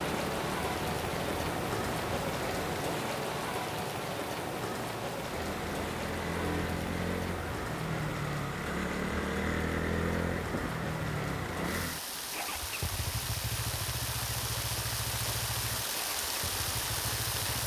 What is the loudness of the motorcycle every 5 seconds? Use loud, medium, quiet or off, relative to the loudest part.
medium, loud, loud, medium.